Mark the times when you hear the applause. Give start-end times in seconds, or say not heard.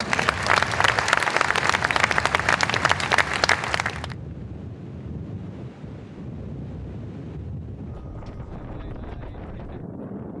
0.0-4.2.